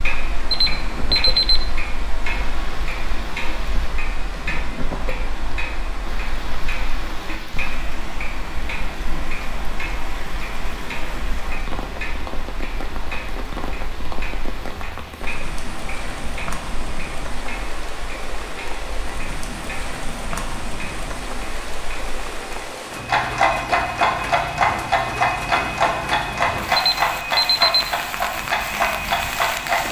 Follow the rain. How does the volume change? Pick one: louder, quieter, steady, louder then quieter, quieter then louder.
louder.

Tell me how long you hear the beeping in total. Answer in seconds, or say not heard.
2 s.